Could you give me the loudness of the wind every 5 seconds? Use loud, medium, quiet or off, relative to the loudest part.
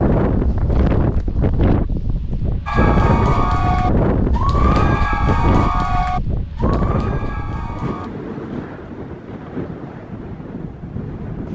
loud, medium, medium.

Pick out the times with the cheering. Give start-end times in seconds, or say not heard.
2.6-8.1.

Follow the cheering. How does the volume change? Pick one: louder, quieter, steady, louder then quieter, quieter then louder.
quieter.